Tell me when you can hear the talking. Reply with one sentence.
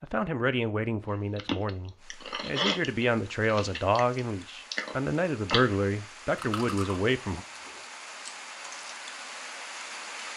You can hear the talking from 0.0 to 7.5 s.